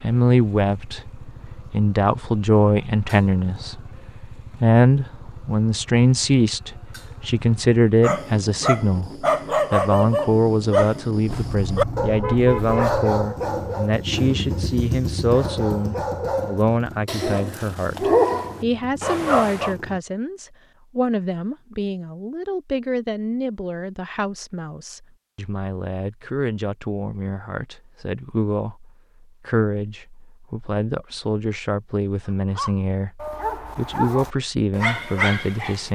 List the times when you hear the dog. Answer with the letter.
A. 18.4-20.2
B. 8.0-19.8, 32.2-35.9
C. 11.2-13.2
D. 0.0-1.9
B.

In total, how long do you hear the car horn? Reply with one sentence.
The car horn can be heard for 2 seconds in total.